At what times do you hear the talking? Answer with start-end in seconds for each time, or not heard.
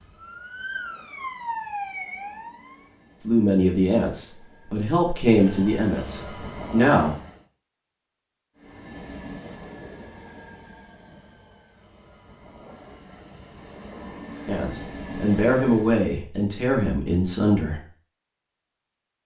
3.2-7.2, 14.4-17.8.